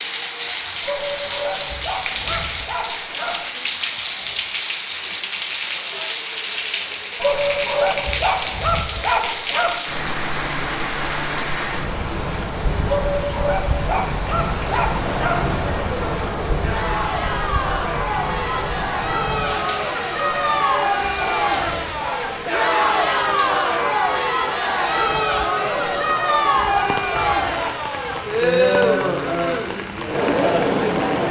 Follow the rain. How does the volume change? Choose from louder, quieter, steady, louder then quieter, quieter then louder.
quieter.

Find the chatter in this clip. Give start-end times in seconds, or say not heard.
15.0-31.2.